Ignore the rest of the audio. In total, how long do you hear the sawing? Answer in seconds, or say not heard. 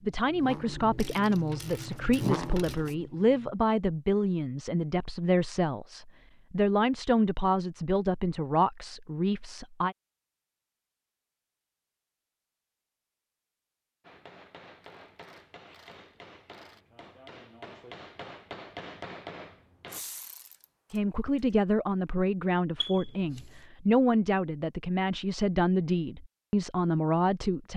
not heard.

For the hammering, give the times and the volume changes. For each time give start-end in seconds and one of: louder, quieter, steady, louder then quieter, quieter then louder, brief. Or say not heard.
14.0-20.1 louder.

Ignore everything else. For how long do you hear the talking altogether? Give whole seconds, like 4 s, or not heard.
17 s.